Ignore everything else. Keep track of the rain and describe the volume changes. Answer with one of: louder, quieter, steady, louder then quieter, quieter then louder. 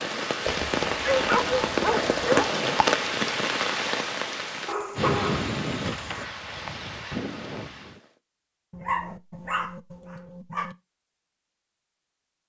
quieter.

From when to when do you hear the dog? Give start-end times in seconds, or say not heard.
0.5-2.5, 4.7-6.2, 8.7-10.8.